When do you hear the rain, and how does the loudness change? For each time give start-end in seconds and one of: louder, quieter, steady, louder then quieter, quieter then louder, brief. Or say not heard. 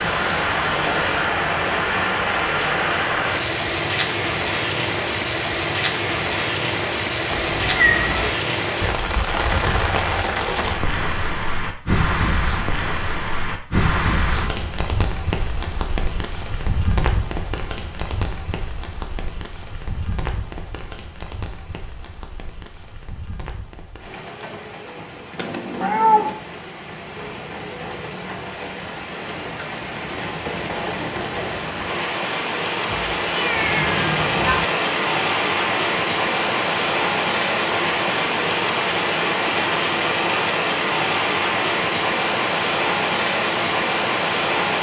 0.0-44.7 quieter then louder.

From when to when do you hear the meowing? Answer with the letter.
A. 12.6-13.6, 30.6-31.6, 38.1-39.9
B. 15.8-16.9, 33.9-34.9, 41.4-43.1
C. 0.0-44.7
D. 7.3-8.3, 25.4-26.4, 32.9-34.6
D.